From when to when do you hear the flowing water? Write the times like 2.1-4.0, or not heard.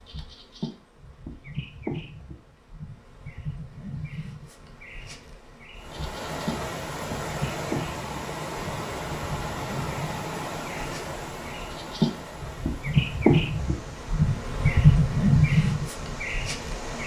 5.8-17.0.